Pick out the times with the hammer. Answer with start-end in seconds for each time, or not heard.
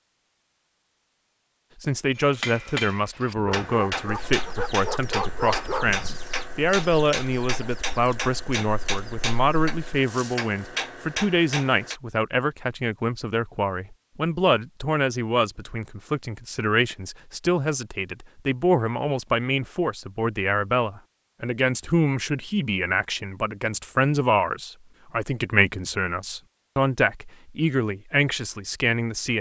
2.1-12.0.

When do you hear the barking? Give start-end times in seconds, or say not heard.
3.4-6.2.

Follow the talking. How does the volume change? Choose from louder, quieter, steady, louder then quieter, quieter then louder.
steady.